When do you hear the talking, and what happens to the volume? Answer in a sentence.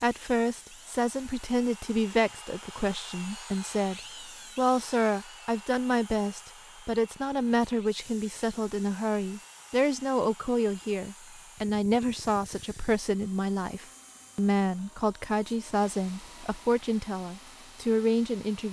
The talking can be heard from 0.0 to 18.6 s, at a steady volume.